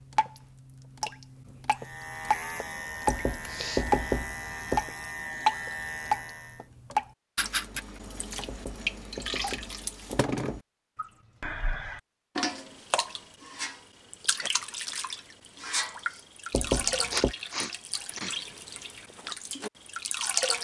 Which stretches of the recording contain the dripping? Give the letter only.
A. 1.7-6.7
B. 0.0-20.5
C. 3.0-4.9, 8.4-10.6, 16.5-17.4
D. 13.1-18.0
B.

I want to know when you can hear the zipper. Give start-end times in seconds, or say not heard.
not heard.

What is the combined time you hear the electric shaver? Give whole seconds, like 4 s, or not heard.
5 s.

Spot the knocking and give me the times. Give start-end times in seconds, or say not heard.
3.0-4.9, 8.4-10.6, 16.5-17.4.